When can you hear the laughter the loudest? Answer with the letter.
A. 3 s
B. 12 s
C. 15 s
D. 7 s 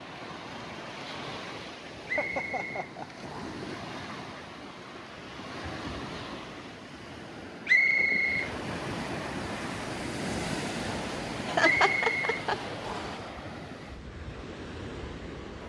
B.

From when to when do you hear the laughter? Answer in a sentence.
The laughter can be heard from 2.0 to 3.2 s and from 11.4 to 12.6 s.